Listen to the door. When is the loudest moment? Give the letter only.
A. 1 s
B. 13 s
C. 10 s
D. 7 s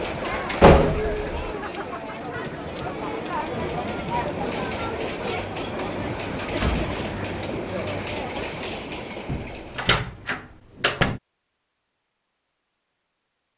A.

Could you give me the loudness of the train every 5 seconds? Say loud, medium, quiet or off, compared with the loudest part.
loud, loud, off.